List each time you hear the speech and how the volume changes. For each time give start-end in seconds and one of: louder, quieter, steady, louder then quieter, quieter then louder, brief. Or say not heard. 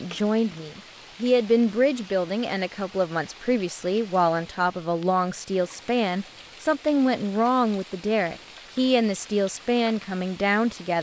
0.0-10.9 steady.